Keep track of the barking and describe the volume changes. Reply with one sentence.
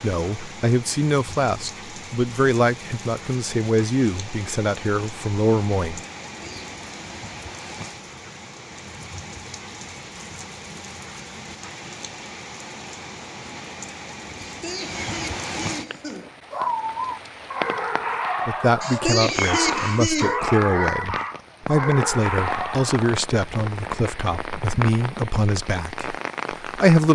The volume of the barking stays about the same.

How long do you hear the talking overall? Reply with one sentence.
You can hear the talking for 15 seconds altogether.